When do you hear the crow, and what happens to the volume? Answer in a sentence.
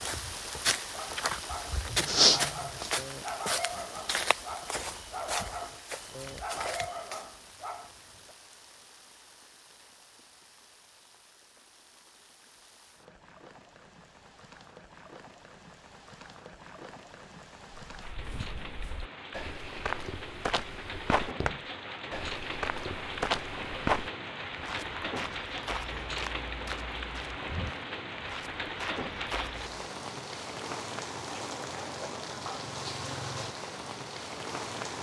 The crow can't be heard in this clip.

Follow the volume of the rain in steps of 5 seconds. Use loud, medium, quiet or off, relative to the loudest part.
medium, quiet, quiet, medium, loud, loud, loud.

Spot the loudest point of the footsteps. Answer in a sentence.
The loudest moment of the footsteps is at 2 seconds.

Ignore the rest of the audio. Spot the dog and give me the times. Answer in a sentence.
The dog can be heard from 0.9 to 8.3 s.